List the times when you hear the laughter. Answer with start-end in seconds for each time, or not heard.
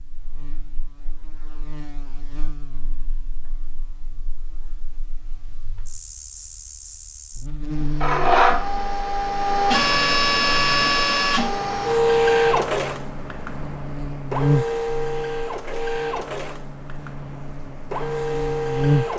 not heard.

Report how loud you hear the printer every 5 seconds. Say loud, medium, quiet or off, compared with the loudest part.
off, loud, loud, medium.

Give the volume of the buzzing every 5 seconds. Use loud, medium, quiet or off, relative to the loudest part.
quiet, medium, loud, loud.